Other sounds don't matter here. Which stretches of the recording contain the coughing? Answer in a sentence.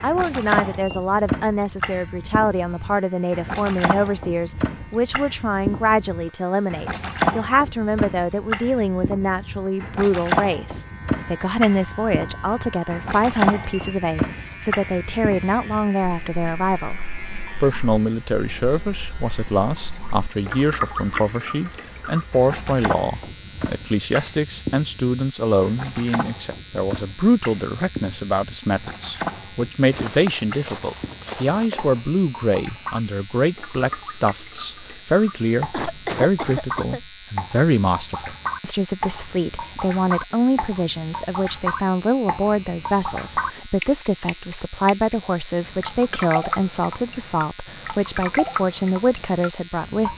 You can hear the coughing from 35.7 to 37.0 s.